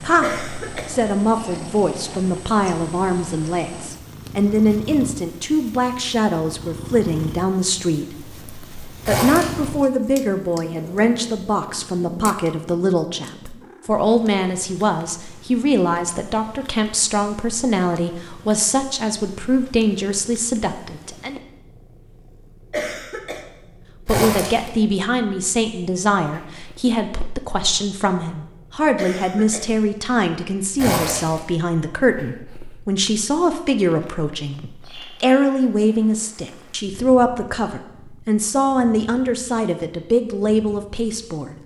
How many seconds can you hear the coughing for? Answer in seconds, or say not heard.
2 s.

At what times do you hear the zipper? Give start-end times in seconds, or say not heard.
9.1-9.7, 24.1-24.7, 30.8-31.4.